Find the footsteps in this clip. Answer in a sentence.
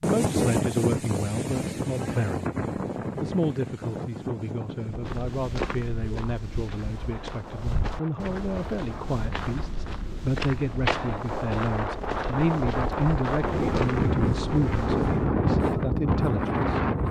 The footsteps can be heard from 4.8 to 15.3 s.